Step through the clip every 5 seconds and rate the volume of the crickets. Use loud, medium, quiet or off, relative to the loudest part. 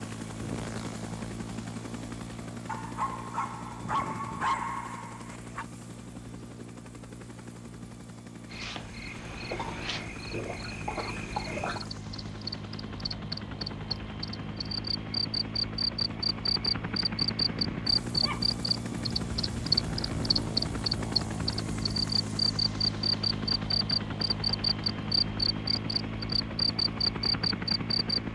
off, medium, medium, loud, loud, loud.